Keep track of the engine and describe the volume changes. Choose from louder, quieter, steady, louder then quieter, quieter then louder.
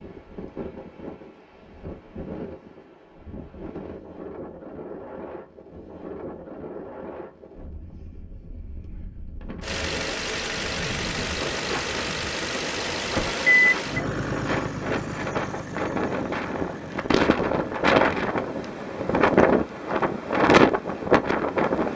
louder then quieter.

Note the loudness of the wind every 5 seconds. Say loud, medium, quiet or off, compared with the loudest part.
quiet, quiet, quiet, loud, loud.